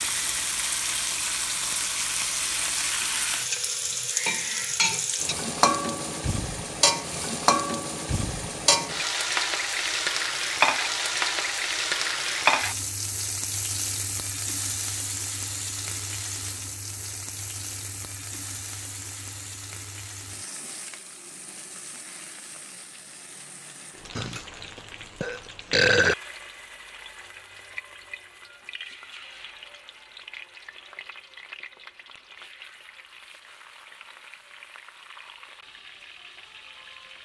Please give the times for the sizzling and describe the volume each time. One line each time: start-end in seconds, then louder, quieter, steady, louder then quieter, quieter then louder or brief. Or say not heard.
0.0-37.1 quieter.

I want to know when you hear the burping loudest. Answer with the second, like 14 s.
26 s.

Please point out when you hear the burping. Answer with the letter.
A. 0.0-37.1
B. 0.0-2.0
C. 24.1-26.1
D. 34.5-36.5
C.